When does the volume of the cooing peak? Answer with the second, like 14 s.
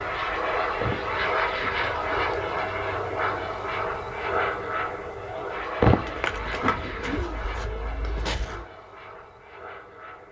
6 s.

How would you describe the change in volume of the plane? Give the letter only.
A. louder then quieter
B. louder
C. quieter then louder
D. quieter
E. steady
D.